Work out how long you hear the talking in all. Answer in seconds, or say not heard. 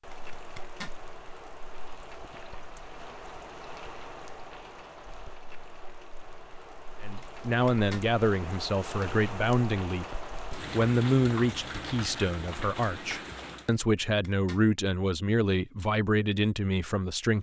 10 s.